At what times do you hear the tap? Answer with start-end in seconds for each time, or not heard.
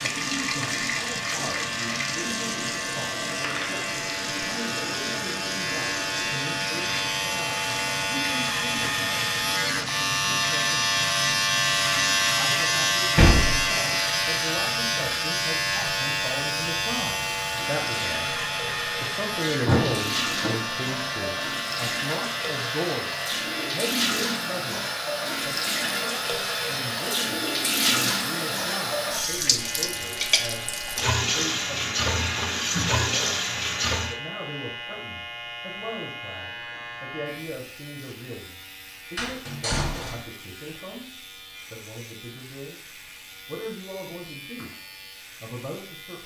0.0-34.2.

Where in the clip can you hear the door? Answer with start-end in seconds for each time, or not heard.
13.2-13.7, 19.6-20.6, 39.1-40.2.